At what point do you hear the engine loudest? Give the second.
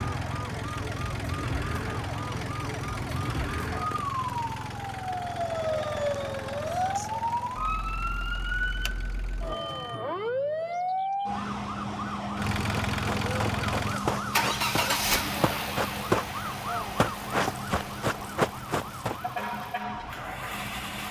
15 s.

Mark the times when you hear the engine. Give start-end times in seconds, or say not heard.
0.0-10.0, 12.3-21.0.